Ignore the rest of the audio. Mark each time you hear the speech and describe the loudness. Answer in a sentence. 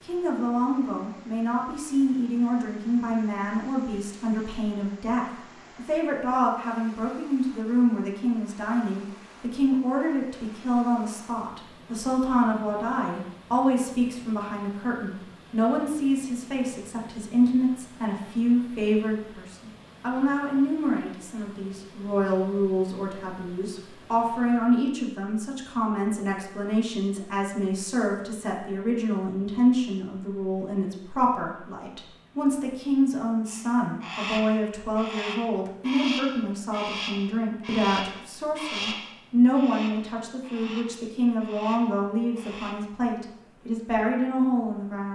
The speech can be heard from 0.0 to 45.1 s, at a steady volume.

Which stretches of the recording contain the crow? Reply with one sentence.
You can hear the crow from 33.5 to 42.8 s.